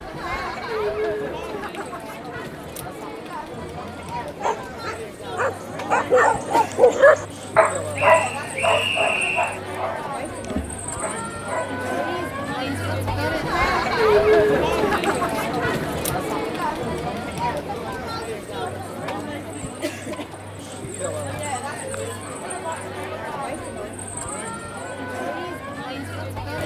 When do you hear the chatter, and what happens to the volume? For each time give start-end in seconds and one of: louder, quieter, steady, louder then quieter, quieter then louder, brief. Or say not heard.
0.0-26.6 louder then quieter.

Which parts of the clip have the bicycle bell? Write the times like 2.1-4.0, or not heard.
not heard.